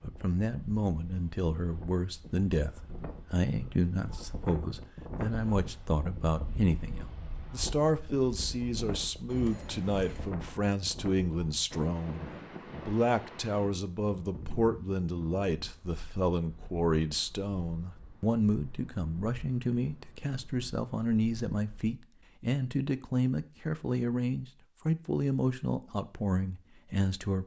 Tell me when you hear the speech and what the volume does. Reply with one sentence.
The speech can be heard from 0.1 to 27.4 s, at a steady volume.